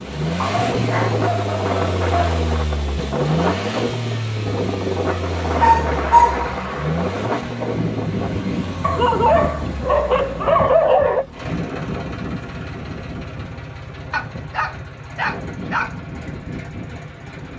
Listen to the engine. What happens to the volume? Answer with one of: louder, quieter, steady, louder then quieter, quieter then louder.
quieter.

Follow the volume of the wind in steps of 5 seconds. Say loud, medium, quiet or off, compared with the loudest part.
loud, loud, medium, medium.